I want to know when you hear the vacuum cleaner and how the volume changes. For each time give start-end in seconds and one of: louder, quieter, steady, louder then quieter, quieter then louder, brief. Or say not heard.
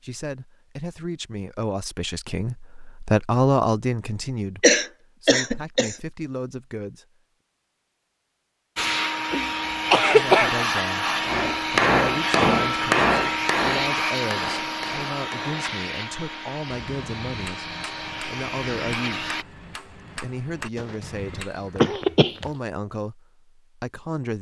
8.8-19.4 quieter.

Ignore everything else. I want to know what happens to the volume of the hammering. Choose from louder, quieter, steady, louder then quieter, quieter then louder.
quieter.